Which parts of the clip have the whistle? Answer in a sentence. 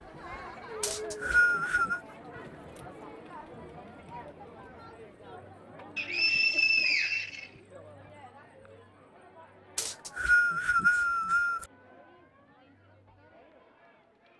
You can hear the whistle from 0.8 to 2.0 s, from 6.0 to 7.5 s and from 9.8 to 11.7 s.